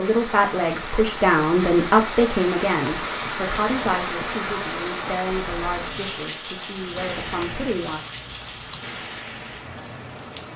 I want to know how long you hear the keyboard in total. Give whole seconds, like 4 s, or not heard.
2 s.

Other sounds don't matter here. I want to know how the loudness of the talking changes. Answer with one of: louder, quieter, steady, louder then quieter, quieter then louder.
quieter.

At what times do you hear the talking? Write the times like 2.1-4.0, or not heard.
0.0-8.0.